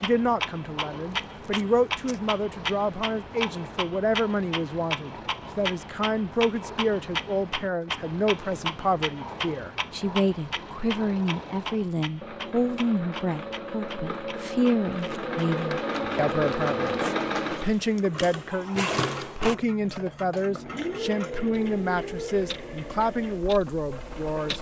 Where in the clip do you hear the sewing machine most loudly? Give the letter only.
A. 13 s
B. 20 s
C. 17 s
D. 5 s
C.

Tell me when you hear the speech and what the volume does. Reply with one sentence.
You can hear the speech from 0.0 to 24.5 s, at a steady volume.